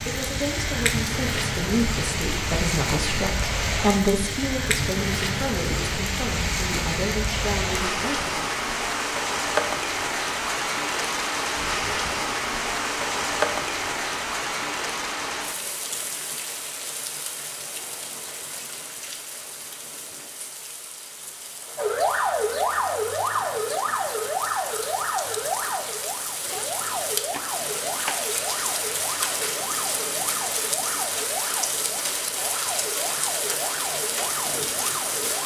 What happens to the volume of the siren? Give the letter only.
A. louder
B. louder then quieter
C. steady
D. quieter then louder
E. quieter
E.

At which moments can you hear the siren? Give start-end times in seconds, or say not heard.
21.8-35.4.